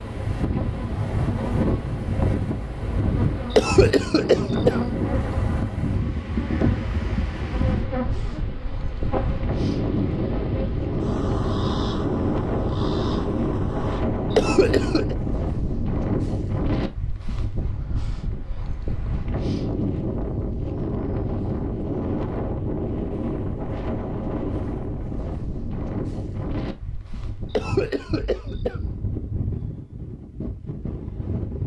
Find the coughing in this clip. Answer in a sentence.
You can hear the coughing from 3.5 to 4.8 s, from 14.3 to 15.2 s and from 27.5 to 28.8 s.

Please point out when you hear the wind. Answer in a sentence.
The wind can be heard from 0.0 to 31.6 s.